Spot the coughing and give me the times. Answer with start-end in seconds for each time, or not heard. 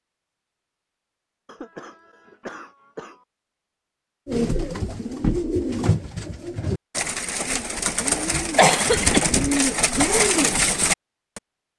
1.4-3.2, 8.6-9.2.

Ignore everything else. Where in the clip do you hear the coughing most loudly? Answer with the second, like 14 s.
9 s.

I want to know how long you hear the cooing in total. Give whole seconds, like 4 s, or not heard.
7 s.